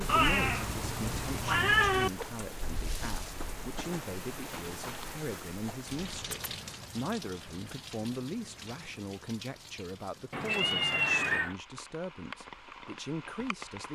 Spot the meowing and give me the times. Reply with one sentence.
You can hear the meowing from 0.1 to 2.1 s, from 6.1 to 6.5 s and from 10.3 to 11.6 s.